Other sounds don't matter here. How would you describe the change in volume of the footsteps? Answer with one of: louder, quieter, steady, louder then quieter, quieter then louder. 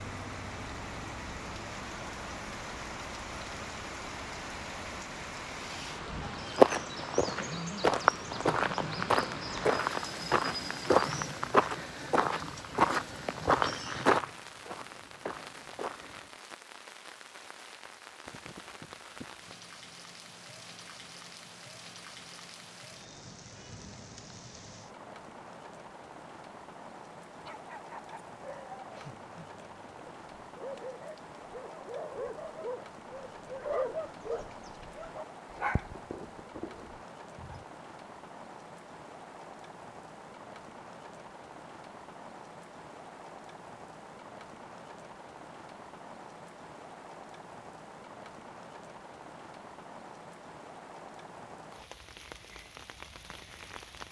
quieter.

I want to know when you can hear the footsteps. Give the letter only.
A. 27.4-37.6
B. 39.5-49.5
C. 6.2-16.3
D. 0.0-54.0
C.